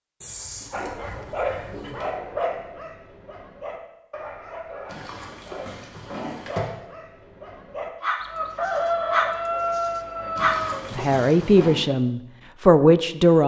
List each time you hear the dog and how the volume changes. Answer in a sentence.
The dog can be heard from 0.7 to 11.2 s, getting quieter then louder.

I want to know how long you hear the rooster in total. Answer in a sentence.
The rooster can be heard for 3 seconds in total.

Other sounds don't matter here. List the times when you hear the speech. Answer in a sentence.
You can hear the speech from 10.9 to 13.4 s.